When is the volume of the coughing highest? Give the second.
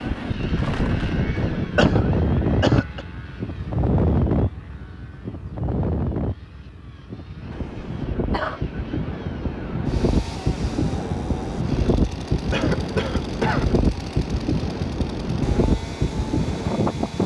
3 s.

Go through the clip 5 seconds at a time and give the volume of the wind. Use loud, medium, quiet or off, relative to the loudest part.
loud, medium, loud, loud.